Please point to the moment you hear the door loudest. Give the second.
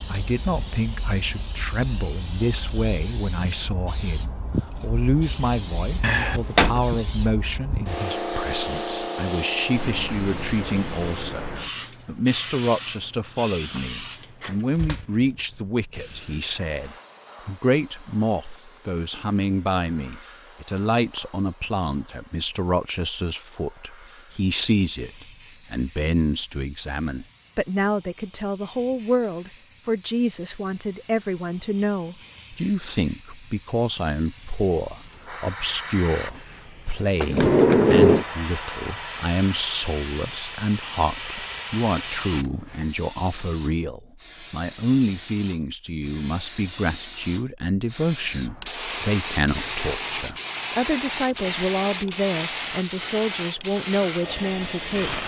38 s.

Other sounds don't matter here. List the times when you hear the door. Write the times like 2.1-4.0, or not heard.
6.0-6.8, 37.2-38.2.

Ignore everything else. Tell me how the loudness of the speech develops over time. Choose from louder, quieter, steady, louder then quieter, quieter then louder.
steady.